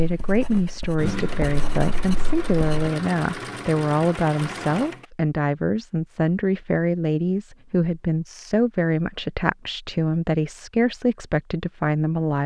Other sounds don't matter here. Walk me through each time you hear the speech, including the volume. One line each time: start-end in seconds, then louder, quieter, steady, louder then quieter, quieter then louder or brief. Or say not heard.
0.0-12.4 steady.